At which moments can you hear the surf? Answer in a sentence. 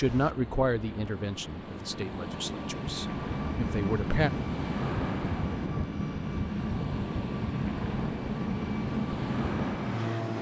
You can hear the surf from 0.0 to 10.3 s.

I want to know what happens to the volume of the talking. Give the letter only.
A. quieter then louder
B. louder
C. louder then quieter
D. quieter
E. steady
A.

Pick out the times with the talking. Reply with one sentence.
The talking can be heard from 0.0 to 4.3 s.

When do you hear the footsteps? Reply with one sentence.
The footsteps can't be heard in this clip.